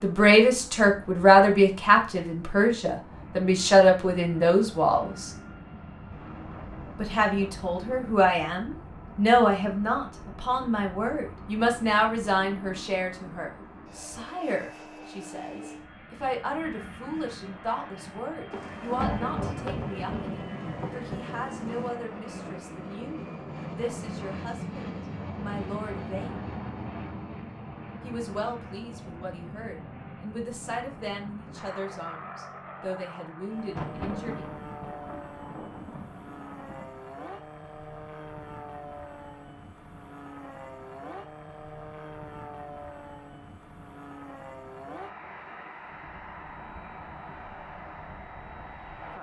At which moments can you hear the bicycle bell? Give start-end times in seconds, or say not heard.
not heard.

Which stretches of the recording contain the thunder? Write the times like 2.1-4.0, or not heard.
6.1-8.2, 18.5-21.9, 33.5-36.9.